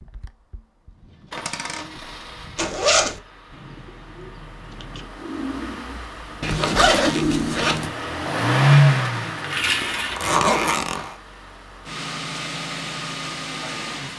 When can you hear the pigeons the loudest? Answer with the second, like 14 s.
7 s.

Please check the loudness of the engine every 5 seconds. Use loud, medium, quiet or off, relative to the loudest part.
quiet, loud, medium.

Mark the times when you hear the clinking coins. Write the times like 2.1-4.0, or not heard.
1.4-1.9, 9.2-10.5.